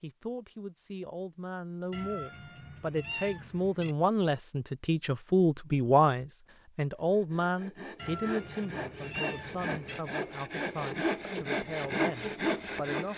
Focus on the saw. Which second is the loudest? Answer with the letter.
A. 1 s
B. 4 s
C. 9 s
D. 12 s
D.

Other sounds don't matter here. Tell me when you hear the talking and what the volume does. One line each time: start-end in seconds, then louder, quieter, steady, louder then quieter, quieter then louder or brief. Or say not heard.
0.0-13.1 louder then quieter.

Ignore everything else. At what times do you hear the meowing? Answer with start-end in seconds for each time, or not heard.
1.9-4.0, 8.0-10.0.